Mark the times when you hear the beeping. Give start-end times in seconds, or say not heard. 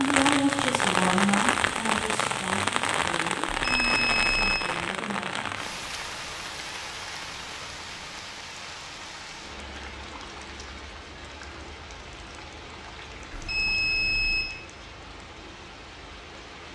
3.5-4.6, 13.3-14.4.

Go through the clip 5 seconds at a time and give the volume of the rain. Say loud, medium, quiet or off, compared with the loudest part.
loud, medium, quiet, quiet.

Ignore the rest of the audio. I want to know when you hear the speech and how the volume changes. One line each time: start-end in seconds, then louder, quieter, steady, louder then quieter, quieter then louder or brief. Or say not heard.
0.0-5.5 quieter.